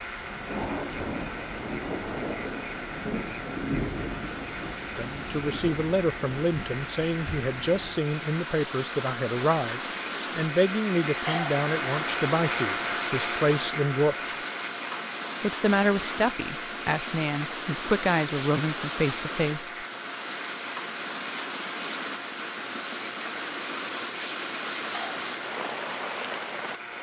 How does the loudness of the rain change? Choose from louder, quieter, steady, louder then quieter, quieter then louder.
steady.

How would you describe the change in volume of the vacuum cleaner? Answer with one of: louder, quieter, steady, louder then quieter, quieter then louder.
louder then quieter.